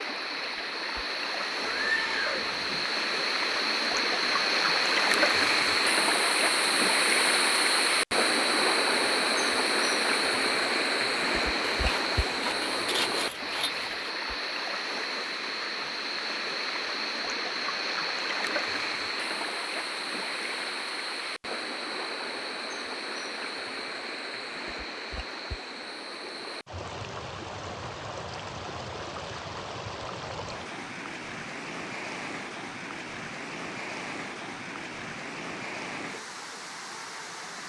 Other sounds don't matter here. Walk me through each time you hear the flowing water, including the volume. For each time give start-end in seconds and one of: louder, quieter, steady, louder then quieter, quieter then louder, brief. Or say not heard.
0.0-37.6 quieter.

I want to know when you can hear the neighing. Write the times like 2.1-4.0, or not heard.
1.6-2.9.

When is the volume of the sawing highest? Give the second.
13 s.